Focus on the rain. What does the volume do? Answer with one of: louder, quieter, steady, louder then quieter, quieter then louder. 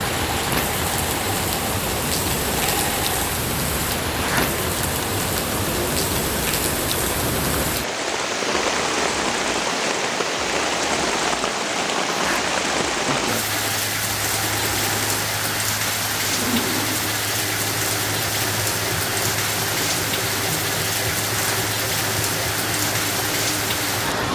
steady.